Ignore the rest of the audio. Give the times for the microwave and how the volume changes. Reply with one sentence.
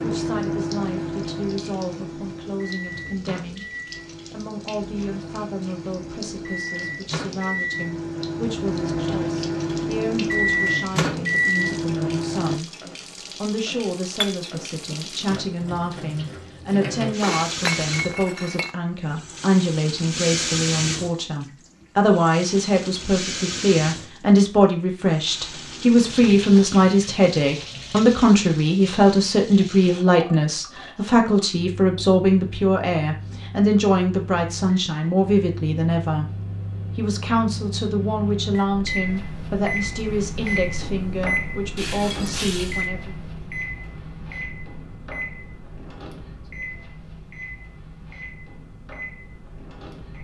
You can hear the microwave from 0.0 to 12.6 s, getting quieter then louder; and from 31.6 to 50.1 s, getting louder then quieter.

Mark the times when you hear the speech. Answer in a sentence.
You can hear the speech from 0.0 to 12.8 s and from 13.4 to 43.1 s.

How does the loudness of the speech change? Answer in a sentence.
The volume of the speech goes up, then down.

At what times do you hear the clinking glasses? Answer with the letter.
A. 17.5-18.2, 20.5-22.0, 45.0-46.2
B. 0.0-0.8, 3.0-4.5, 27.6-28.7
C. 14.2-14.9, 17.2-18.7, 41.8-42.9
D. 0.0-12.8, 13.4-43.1
C.